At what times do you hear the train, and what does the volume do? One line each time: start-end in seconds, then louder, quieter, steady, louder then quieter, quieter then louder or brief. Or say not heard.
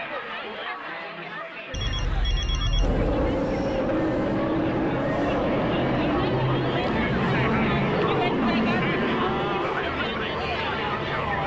2.8-11.4 quieter.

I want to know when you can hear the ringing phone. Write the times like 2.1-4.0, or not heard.
1.7-3.1.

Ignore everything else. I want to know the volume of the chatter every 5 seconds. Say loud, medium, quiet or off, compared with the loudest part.
medium, loud, loud.